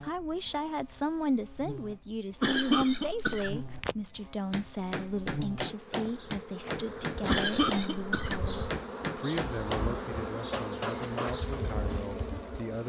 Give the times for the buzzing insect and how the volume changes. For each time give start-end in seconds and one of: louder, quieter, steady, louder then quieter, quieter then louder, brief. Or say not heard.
0.0-12.8 louder.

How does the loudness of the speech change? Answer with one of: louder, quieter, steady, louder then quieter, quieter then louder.
quieter.